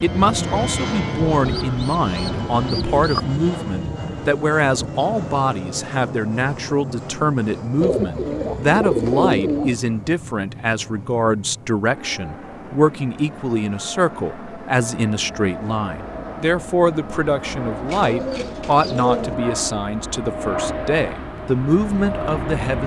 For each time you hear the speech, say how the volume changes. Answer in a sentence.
You can hear the speech from 0.0 to 22.8 s, at a steady volume.